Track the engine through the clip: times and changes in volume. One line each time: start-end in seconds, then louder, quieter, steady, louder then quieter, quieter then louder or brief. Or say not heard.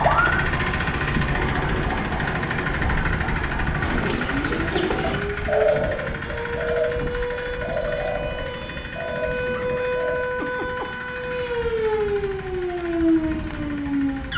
0.0-14.3 quieter.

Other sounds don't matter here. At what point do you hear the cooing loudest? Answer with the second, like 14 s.
6 s.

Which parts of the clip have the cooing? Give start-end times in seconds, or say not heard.
3.8-10.2.